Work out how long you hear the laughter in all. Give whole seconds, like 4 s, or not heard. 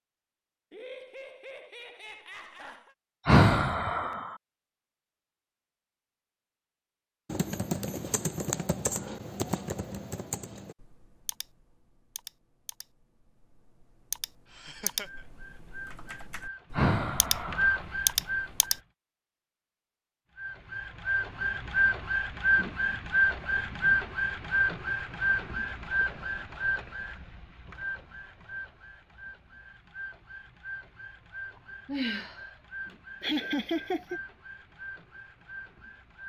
4 s.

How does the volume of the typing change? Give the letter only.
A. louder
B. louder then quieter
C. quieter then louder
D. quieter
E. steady
C.